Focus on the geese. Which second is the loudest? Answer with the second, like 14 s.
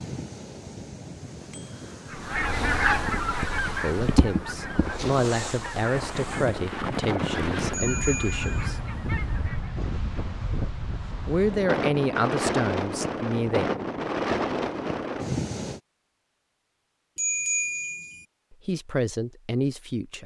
3 s.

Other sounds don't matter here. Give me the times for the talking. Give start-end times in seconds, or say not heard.
3.6-8.8, 11.2-13.7, 18.5-20.2.